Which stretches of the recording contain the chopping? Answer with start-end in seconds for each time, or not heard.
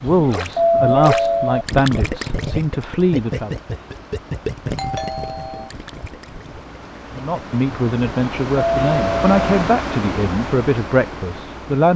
not heard.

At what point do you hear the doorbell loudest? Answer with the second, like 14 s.
1 s.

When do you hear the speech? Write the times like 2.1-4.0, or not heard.
0.0-3.5, 7.2-11.9.